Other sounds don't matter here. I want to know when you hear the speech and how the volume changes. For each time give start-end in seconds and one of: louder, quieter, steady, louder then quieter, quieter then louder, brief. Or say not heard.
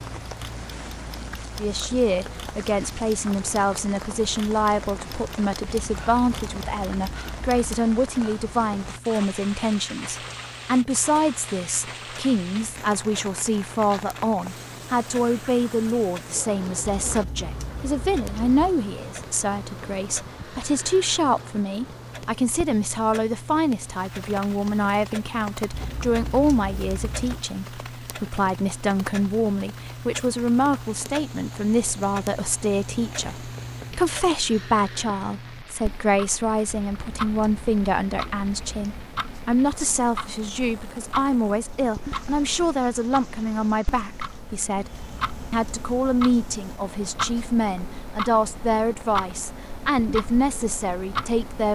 1.6-51.7 steady.